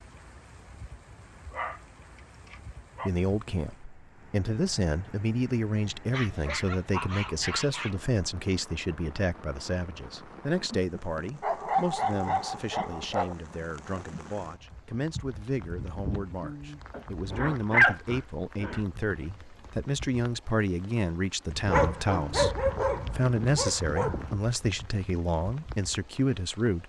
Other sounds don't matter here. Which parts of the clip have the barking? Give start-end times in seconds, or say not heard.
1.5-3.1, 6.1-8.0, 11.4-13.3, 16.9-18.8, 21.6-24.4.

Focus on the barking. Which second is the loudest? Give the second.
18 s.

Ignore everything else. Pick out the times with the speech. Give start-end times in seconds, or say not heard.
3.0-26.8.